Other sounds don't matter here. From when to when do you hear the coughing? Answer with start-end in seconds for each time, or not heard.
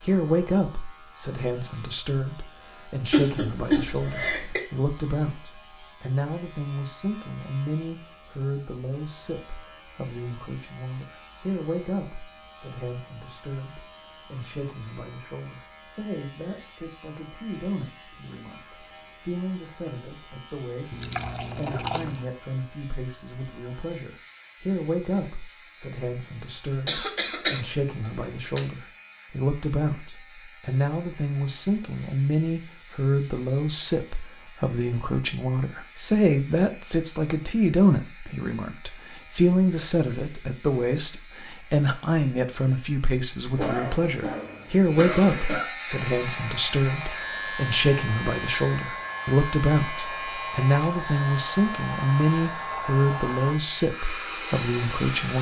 3.1-4.6, 26.6-28.6, 43.5-45.6.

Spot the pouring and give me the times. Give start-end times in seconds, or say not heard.
20.9-22.3.